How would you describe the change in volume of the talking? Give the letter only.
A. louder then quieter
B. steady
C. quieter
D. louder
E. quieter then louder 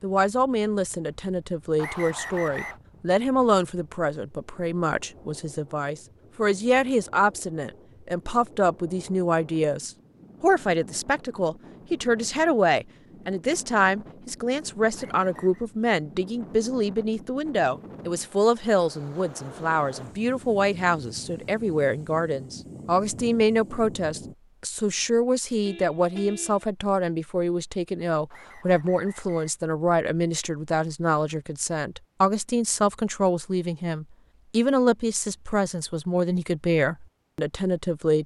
B.